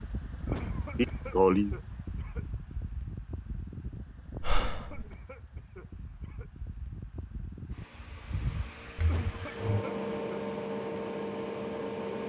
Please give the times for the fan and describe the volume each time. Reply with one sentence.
You can hear the fan from 0.0 to 12.2 s, getting quieter then louder.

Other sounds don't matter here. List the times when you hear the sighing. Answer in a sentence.
You can hear the sighing from 0.9 to 1.8 s, from 4.4 to 5.0 s and from 8.9 to 9.7 s.